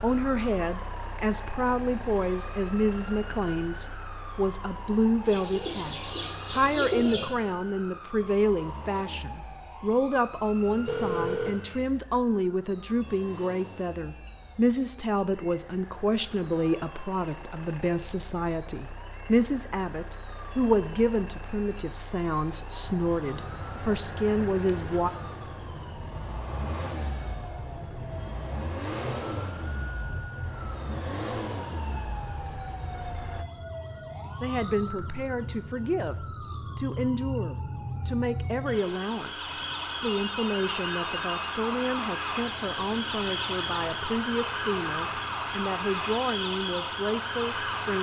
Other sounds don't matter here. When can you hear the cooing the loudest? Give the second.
7 s.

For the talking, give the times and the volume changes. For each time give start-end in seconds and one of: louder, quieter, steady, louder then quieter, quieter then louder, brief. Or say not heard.
0.0-25.1 steady
34.4-47.9 steady.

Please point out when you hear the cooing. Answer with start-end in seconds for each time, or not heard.
5.2-7.2.